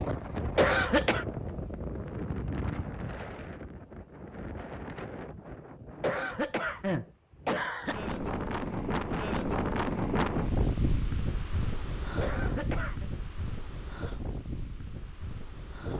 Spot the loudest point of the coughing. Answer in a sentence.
The loudest moment of the coughing is at 1 second.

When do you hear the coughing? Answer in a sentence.
You can hear the coughing from 0.6 to 1.2 s, from 6.0 to 8.0 s and from 12.2 to 13.1 s.